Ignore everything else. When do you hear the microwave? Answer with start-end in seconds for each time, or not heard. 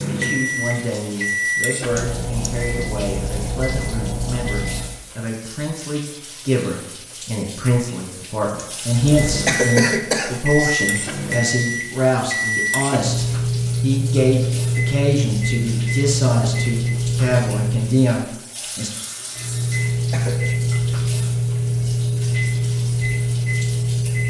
0.0-5.0, 8.9-18.1, 19.4-24.2.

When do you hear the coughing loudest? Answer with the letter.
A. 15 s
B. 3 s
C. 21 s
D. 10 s
D.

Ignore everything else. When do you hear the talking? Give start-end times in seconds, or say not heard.
0.0-18.9.